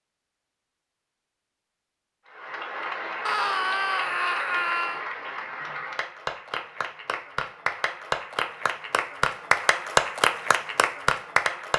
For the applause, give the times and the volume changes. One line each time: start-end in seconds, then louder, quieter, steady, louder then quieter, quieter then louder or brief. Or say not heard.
2.2-11.7 louder.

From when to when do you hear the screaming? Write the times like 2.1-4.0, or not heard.
3.2-5.0.